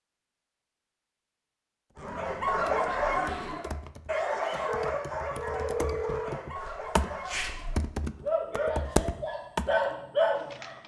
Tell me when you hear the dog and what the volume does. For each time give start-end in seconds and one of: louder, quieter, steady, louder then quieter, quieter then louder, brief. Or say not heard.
2.0-10.8 quieter then louder.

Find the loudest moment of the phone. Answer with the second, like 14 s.
6 s.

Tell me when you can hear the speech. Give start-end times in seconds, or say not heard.
not heard.